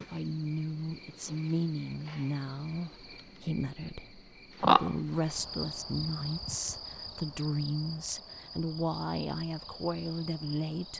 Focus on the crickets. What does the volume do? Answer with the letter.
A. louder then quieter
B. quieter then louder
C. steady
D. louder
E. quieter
A.